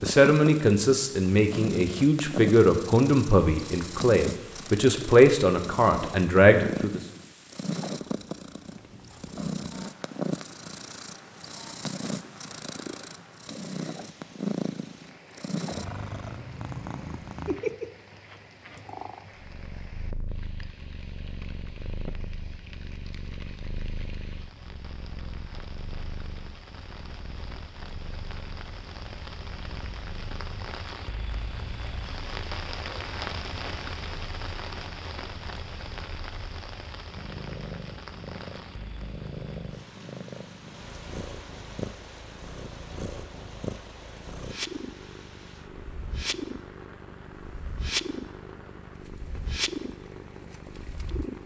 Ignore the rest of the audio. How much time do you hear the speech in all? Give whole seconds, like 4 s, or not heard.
7 s.